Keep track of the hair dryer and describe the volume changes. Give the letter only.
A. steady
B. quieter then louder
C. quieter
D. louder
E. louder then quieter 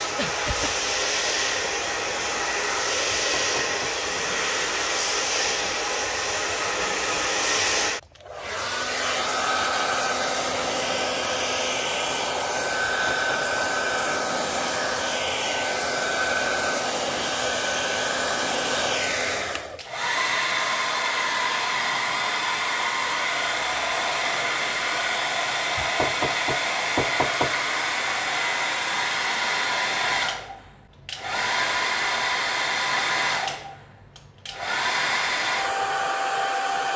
A.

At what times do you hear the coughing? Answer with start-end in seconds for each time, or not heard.
0.1-0.8.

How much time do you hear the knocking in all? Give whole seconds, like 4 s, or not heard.
3 s.